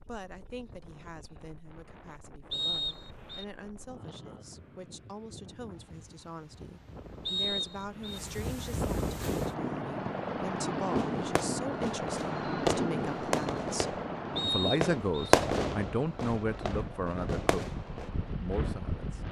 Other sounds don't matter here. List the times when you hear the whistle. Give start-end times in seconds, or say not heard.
2.5-3.5, 7.2-8.2, 14.3-15.3.